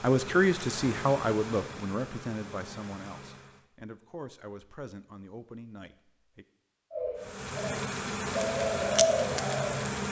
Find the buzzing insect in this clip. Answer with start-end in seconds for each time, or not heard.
0.0-3.6, 7.2-10.0.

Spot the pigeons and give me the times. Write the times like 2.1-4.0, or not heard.
6.9-9.8.